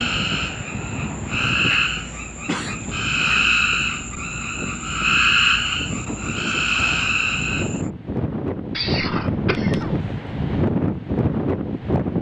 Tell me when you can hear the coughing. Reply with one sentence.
The coughing can be heard from 1.6 to 3.5 s and from 8.7 to 10.1 s.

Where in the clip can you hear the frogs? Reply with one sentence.
You can hear the frogs from 0.0 to 7.9 s.